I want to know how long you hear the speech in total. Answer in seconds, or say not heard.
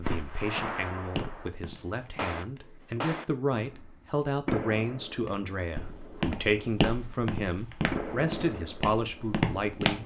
10 s.